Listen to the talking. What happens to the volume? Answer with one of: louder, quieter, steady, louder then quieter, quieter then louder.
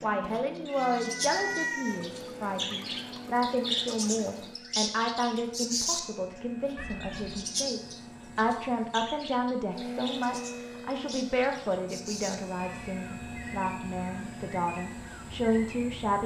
steady.